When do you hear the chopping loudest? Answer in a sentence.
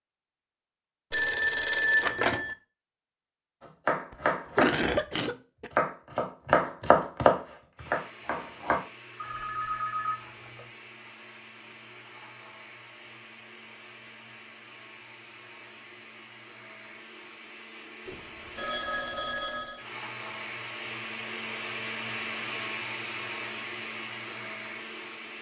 The volume of the chopping peaks at 7 seconds.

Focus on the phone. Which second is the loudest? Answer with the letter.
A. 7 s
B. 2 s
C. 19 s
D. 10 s
B.